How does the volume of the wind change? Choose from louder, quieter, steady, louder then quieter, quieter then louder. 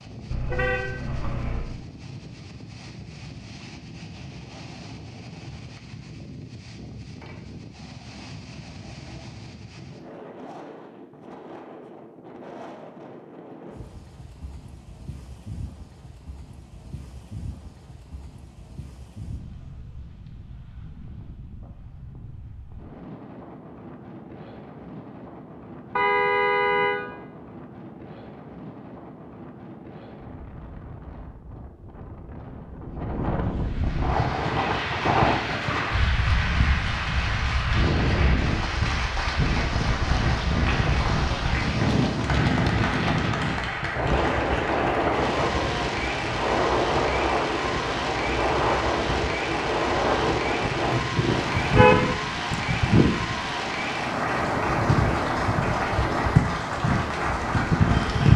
louder.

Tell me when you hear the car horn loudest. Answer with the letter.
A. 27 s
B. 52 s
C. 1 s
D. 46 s
B.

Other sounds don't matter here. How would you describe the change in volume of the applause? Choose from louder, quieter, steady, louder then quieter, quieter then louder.
steady.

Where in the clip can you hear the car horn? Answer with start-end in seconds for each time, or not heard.
0.3-1.6, 25.9-27.0, 50.8-52.1.